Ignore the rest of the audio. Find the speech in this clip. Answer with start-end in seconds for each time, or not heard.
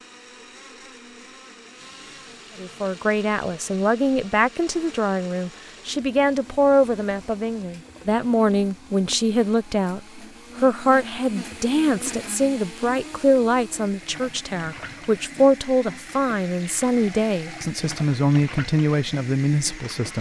2.6-20.1.